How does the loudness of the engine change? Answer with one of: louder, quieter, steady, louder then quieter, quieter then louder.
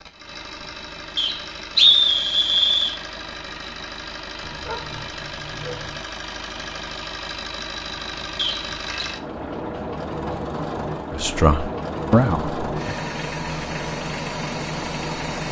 louder.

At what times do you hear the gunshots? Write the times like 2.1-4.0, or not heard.
not heard.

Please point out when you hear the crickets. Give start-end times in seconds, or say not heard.
not heard.